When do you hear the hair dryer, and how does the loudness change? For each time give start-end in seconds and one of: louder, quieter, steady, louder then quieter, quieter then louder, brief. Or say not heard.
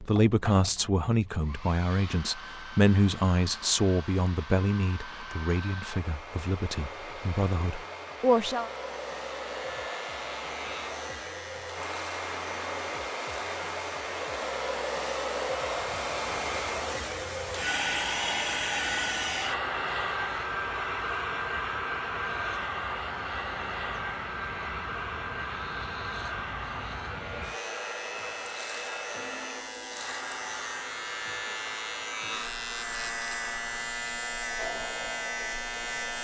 0.0-36.1 louder then quieter.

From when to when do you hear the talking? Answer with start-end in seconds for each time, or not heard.
0.0-8.7.